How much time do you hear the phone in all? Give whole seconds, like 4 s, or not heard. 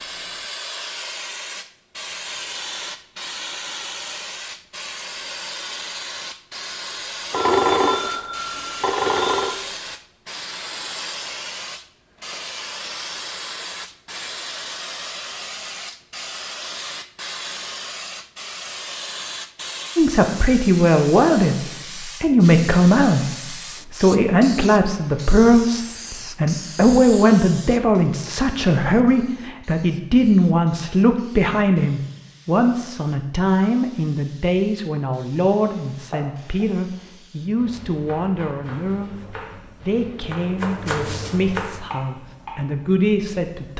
2 s.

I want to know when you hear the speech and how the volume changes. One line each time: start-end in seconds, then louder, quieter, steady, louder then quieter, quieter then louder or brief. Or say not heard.
19.9-21.6 brief
22.2-23.2 brief
23.9-43.7 quieter.